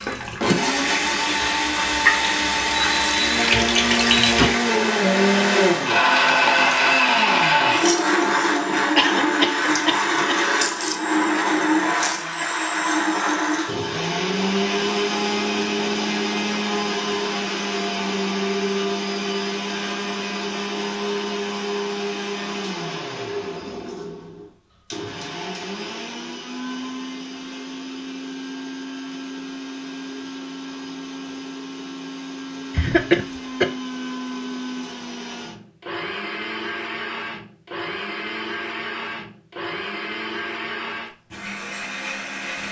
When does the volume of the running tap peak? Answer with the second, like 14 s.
4 s.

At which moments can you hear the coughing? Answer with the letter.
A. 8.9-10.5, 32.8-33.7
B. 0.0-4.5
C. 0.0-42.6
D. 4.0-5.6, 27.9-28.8
A.